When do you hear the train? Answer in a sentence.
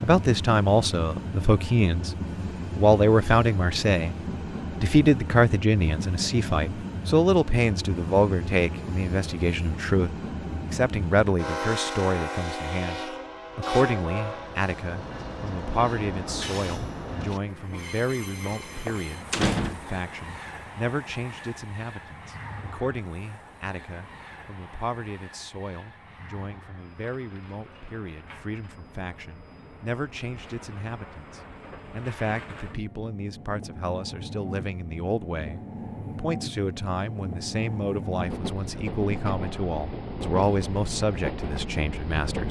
The train can be heard from 0.0 to 42.4 s.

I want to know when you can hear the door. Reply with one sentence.
The door can be heard from 18.4 to 19.8 s.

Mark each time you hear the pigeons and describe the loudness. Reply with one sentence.
The pigeons can't be heard in this clip.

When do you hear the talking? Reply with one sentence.
The talking can be heard from 0.0 to 2.1 s, from 2.8 to 4.2 s and from 4.8 to 42.4 s.